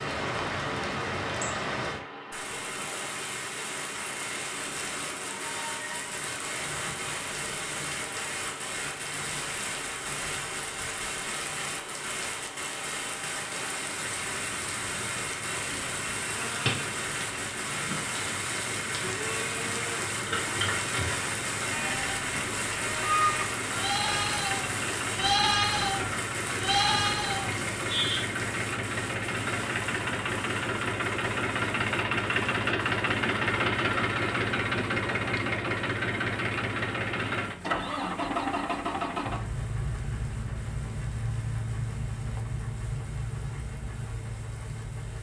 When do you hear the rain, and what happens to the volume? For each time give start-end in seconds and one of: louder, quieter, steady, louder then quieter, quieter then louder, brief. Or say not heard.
0.0-45.1 quieter.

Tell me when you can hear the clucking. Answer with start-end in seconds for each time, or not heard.
not heard.